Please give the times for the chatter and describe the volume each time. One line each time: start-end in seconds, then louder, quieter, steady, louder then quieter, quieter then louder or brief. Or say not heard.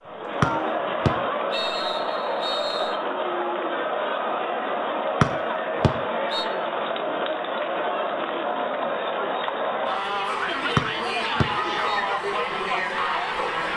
0.0-13.7 steady.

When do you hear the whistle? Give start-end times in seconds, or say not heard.
0.4-3.0, 5.2-6.5, 10.8-12.1.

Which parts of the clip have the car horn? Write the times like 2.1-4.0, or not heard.
0.0-0.9, 11.6-12.1.